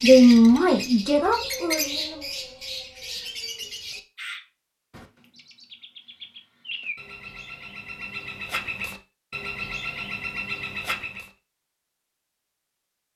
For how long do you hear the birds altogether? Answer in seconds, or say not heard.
11 s.